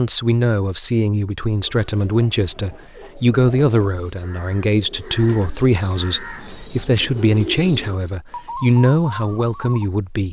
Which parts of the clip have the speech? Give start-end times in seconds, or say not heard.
0.0-10.2.